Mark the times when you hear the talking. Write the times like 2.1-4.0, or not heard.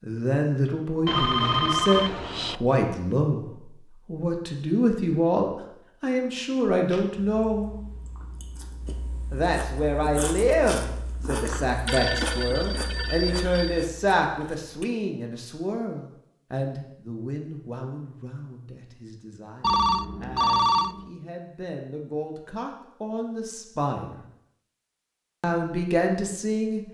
0.0-7.7, 9.3-24.2, 25.4-26.8.